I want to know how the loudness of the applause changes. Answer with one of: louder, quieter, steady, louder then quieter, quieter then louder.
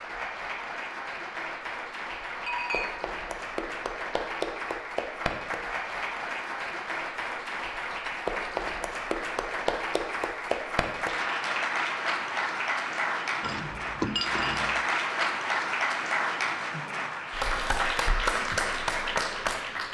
louder.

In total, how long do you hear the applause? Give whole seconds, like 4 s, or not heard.
20 s.